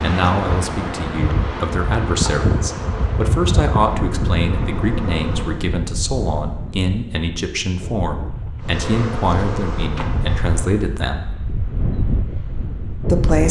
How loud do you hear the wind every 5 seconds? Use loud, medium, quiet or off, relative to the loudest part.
loud, medium, loud.